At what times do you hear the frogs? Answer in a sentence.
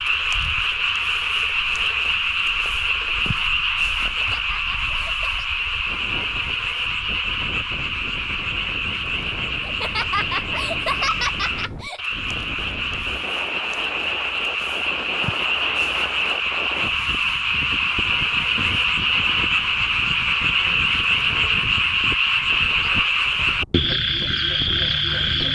You can hear the frogs from 0.0 to 25.5 s.